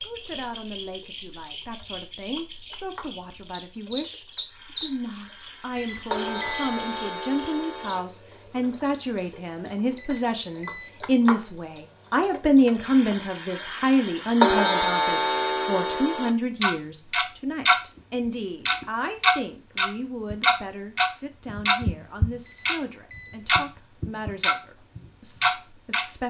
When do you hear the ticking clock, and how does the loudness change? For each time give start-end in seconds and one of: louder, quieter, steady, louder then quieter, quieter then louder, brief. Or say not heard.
0.0-26.1 louder.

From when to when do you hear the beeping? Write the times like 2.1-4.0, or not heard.
5.8-6.7, 9.9-10.9, 22.4-23.4.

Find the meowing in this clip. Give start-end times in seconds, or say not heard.
not heard.